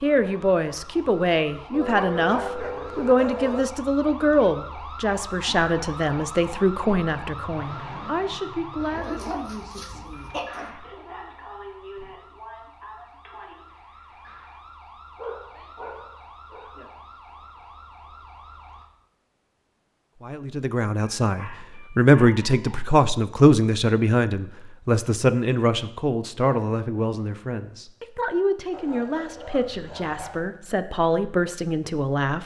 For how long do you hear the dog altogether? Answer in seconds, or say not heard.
9 s.